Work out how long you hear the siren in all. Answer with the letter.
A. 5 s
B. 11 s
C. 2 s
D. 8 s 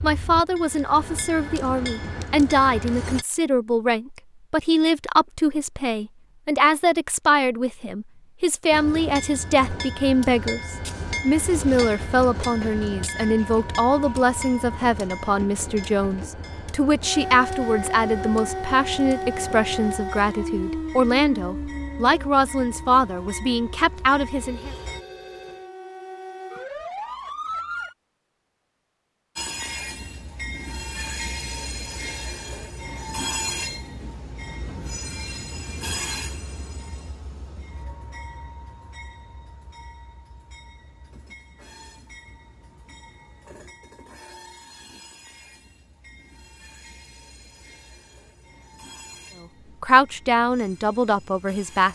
B.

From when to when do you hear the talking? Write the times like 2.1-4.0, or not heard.
0.0-24.7, 49.8-51.9.